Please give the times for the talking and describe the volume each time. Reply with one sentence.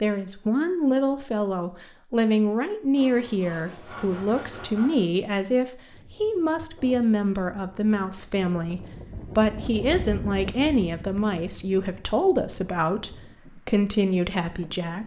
You can hear the talking from 0.0 to 15.0 s, at a steady volume.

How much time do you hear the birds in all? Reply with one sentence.
You can't hear the birds here.